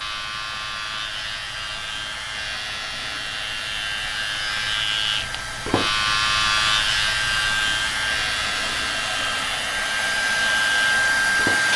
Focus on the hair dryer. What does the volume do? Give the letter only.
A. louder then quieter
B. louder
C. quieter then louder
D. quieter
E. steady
B.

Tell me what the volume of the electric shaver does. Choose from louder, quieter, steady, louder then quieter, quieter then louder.
louder then quieter.